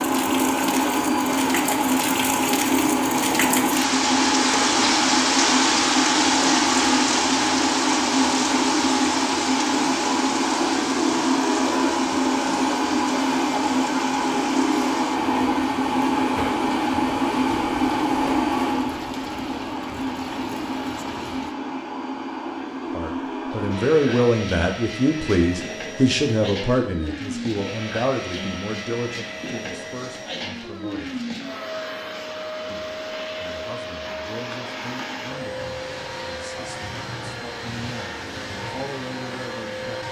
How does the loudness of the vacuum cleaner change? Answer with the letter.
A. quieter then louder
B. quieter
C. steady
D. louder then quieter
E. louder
B.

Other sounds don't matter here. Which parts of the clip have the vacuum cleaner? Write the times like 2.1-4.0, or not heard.
0.0-40.0.